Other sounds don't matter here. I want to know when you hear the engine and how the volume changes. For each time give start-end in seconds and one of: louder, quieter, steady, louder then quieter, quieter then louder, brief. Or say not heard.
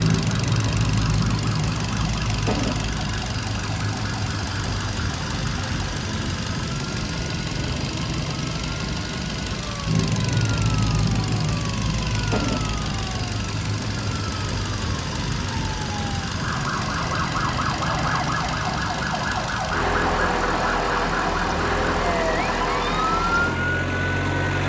0.0-24.6 steady.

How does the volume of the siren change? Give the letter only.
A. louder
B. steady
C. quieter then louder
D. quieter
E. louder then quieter
A.